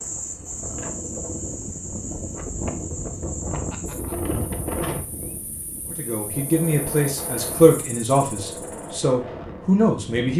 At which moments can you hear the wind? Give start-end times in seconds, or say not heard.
0.0-10.3.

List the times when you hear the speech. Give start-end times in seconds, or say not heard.
5.9-10.3.